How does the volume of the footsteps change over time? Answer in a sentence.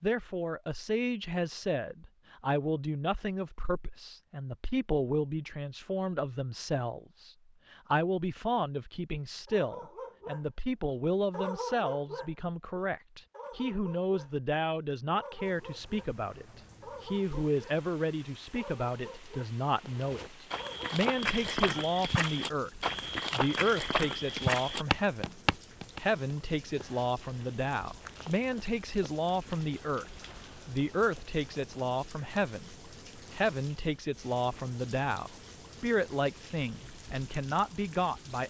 The loudness of the footsteps goes down.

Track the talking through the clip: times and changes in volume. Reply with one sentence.
The talking can be heard from 0.0 to 38.4 s, at a steady volume.